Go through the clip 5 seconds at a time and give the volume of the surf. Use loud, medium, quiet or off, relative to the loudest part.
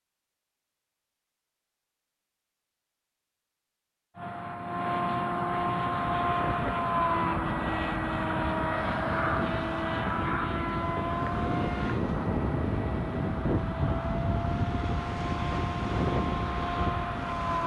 off, medium, loud, loud.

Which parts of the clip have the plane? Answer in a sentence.
You can hear the plane from 4.2 to 17.6 s.